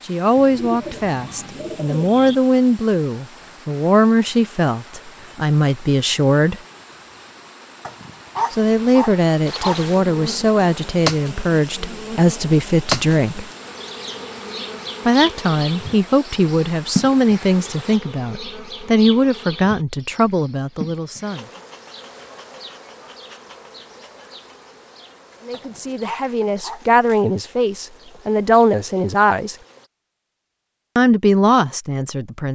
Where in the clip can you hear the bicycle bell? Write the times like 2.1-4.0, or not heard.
not heard.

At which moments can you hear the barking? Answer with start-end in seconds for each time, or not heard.
7.8-9.8, 25.5-27.0.